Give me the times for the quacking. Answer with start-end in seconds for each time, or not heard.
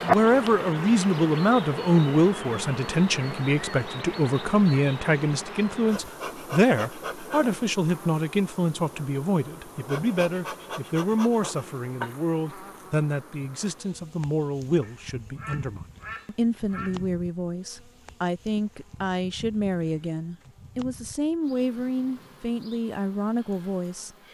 14.8-17.1.